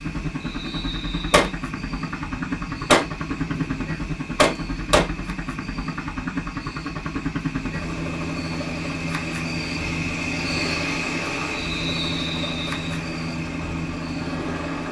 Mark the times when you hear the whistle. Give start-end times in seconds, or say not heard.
0.4-1.4, 11.5-12.8.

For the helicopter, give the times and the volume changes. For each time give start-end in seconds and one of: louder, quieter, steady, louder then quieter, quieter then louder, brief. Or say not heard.
0.0-14.8 steady.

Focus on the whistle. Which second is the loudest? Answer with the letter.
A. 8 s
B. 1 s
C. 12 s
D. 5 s
C.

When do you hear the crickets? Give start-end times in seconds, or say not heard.
0.0-14.8.